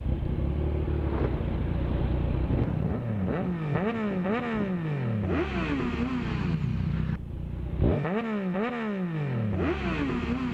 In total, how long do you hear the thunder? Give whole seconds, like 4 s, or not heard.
4 s.